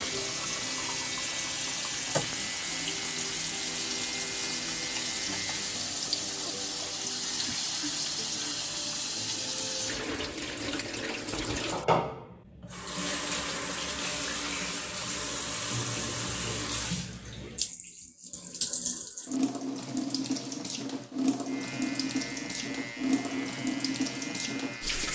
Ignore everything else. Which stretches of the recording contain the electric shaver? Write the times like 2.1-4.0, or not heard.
0.0-5.7, 21.4-25.0.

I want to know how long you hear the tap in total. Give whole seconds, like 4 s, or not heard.
25 s.